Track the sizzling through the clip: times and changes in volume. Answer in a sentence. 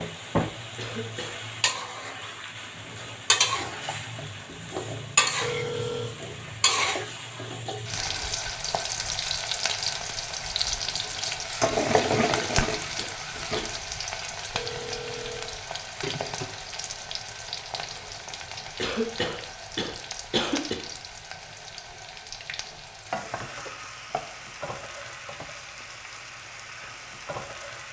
The sizzling can be heard from 0.0 to 27.8 s, getting quieter.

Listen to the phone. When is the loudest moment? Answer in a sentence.
The loudest moment of the phone is at 6 seconds.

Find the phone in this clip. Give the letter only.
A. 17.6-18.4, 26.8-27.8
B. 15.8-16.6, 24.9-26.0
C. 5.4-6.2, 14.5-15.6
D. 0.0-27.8
C.